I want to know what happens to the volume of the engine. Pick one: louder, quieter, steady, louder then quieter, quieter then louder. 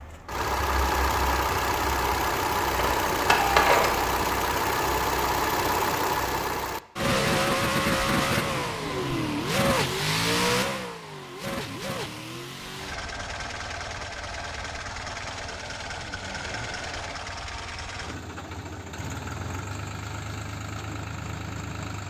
quieter.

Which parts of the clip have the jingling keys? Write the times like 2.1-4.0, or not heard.
2.8-4.1.